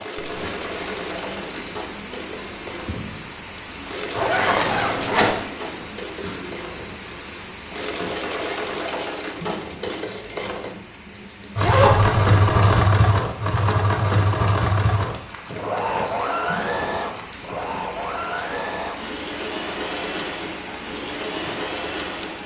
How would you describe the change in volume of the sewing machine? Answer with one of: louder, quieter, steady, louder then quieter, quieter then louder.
louder then quieter.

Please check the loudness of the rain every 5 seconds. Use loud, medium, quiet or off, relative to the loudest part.
loud, loud, medium, loud, loud.